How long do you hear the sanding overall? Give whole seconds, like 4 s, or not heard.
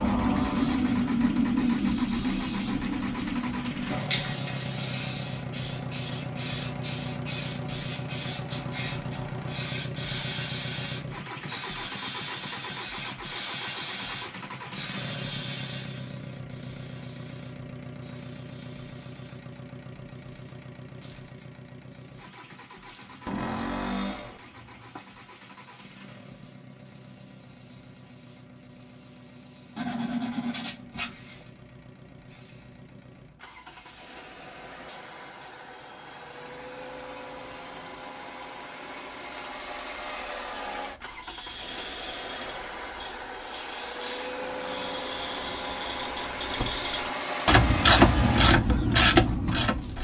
2 s.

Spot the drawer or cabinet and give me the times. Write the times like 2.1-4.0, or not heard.
23.2-24.4.